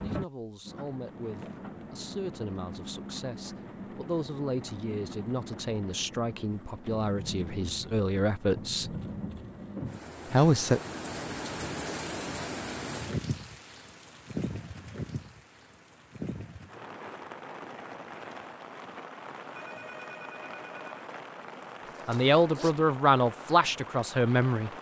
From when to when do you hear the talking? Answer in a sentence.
You can hear the talking from 0.0 to 8.9 s, from 10.3 to 10.8 s and from 22.1 to 24.7 s.